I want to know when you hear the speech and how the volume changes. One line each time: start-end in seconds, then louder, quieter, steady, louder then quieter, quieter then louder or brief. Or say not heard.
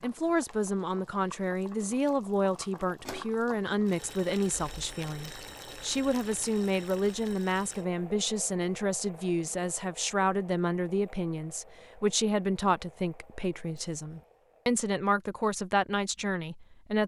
0.0-17.0 steady.